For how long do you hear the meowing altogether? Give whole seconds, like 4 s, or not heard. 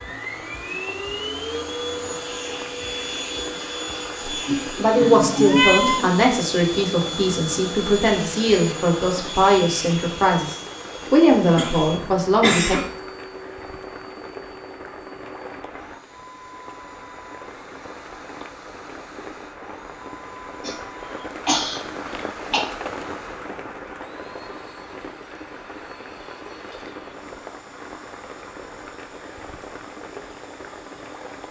2 s.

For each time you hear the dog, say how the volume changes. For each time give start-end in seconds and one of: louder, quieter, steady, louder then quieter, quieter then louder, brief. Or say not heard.
not heard.